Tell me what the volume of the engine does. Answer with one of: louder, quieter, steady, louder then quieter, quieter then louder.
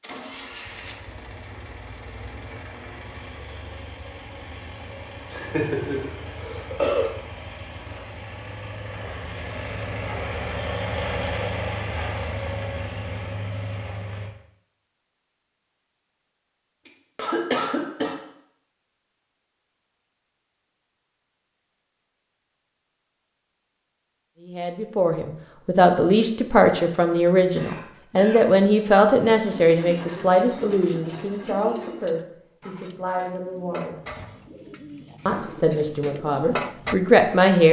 louder.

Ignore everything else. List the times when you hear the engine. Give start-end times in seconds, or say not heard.
0.0-14.3.